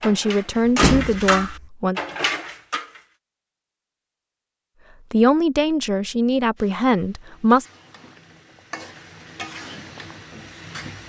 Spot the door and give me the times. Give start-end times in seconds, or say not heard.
0.7-1.4.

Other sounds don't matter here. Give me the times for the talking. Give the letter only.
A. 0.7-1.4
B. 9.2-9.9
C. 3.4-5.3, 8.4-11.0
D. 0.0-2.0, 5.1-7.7
D.